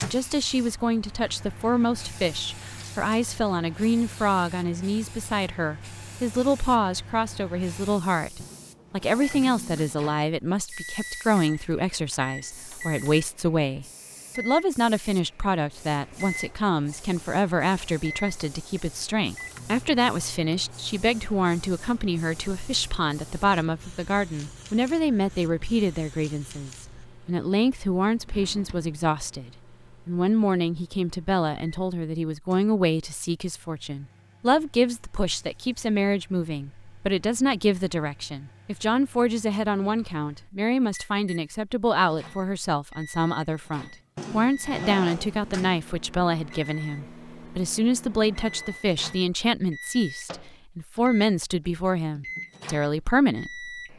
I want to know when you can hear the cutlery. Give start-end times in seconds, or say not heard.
not heard.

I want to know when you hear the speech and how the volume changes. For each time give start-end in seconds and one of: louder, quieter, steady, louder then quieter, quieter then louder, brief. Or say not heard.
0.0-53.7 steady.